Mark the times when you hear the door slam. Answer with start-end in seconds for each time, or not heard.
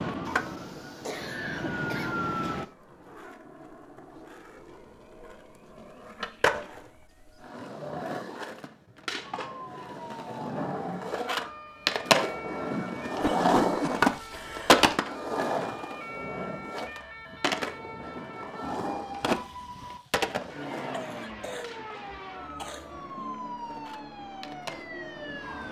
not heard.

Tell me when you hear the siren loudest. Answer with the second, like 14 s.
2 s.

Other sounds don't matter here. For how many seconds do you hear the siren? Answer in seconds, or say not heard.
19 s.